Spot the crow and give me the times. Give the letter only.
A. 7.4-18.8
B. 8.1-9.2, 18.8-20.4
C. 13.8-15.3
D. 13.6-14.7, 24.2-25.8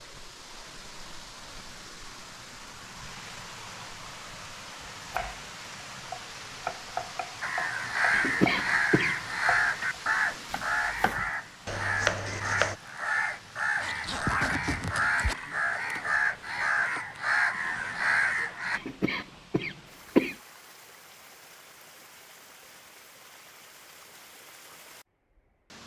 A.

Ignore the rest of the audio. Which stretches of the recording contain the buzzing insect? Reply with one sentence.
The buzzing insect can't be heard in this clip.